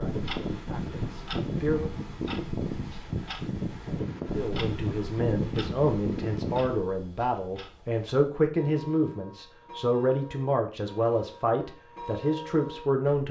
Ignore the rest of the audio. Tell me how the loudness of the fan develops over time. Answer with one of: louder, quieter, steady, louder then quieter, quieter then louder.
steady.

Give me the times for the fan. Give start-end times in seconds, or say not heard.
0.0-6.8.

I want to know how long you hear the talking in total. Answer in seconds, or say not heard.
11 s.